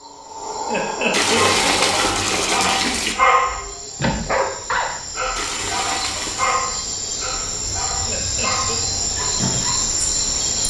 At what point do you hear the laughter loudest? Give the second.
1 s.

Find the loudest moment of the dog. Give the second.
3 s.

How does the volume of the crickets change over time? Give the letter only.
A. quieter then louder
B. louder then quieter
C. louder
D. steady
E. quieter
A.